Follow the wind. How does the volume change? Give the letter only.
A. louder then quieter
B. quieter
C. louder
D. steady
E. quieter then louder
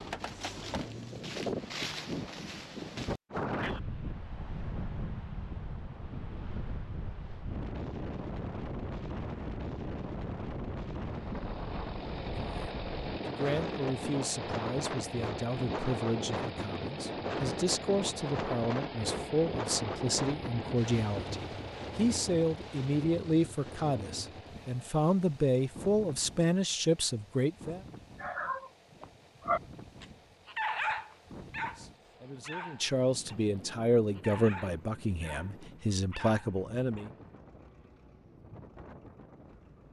B.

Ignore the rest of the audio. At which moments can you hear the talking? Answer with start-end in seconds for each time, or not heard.
12.2-27.8, 31.6-37.1.